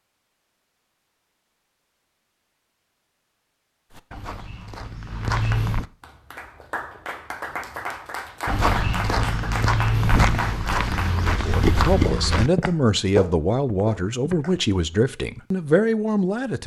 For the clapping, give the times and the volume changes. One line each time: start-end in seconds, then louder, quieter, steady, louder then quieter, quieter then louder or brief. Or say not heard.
5.0-14.6 louder.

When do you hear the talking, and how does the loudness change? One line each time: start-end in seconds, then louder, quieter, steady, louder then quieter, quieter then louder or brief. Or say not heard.
11.4-16.6 steady.